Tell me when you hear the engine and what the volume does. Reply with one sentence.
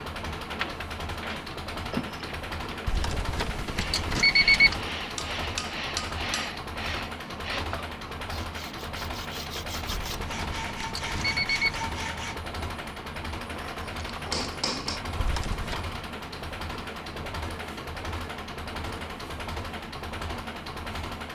You can hear the engine from 0.0 to 21.3 s, at a steady volume.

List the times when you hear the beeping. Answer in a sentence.
You can hear the beeping from 2.9 to 4.8 s, from 9.8 to 11.8 s and from 15.2 to 15.8 s.